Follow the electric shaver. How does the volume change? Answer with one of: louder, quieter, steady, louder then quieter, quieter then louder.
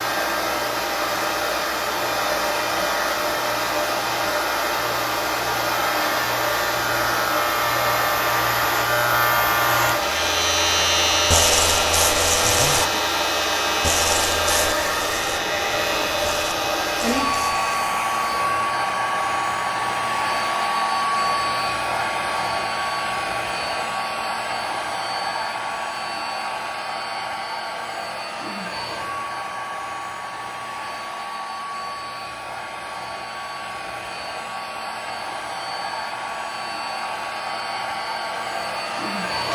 louder then quieter.